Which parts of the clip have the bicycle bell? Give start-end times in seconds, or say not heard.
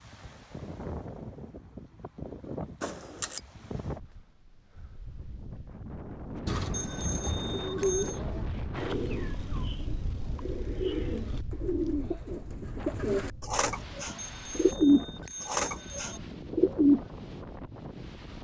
2.8-3.4, 6.7-8.2, 14.2-16.2.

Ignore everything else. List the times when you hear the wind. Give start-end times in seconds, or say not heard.
0.0-18.3.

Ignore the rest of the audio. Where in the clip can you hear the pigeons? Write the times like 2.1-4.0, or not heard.
6.5-17.1.